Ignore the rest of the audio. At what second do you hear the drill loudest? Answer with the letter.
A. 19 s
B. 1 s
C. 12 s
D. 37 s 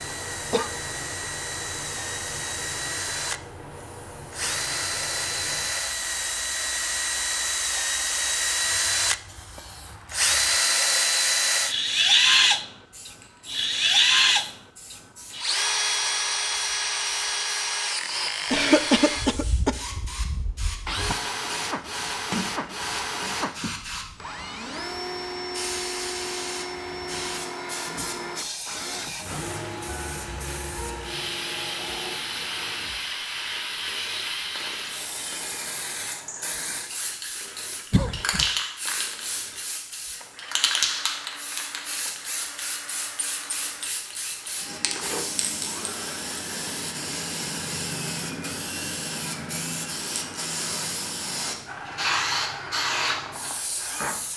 C.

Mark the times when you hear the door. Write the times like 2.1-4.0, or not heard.
22.3-23.4.